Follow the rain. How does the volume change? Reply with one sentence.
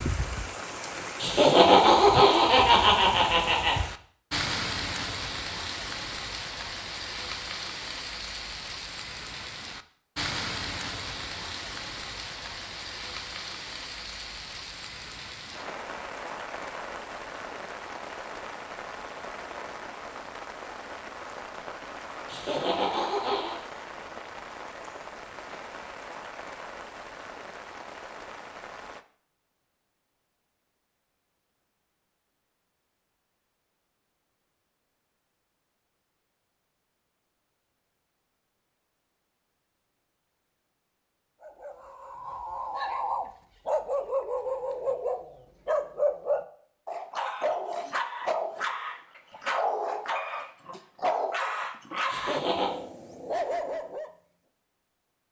The volume of the rain goes down.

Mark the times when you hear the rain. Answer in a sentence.
You can hear the rain from 0.0 to 29.1 s.